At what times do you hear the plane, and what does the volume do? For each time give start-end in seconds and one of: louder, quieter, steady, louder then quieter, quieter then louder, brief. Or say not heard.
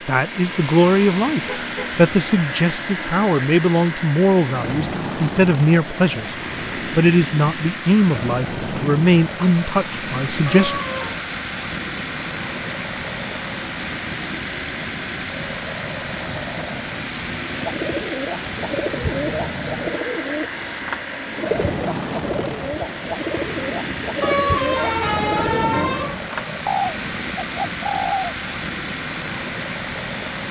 0.0-30.4 steady.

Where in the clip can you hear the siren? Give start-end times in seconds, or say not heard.
not heard.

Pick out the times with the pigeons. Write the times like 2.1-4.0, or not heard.
17.6-28.4.